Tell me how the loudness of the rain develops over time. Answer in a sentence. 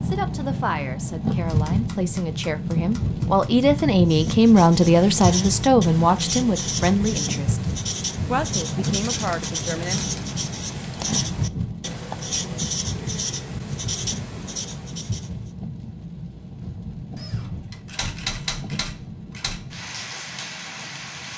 The volume of the rain goes down.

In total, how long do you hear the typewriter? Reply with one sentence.
You can hear the typewriter for 7 seconds altogether.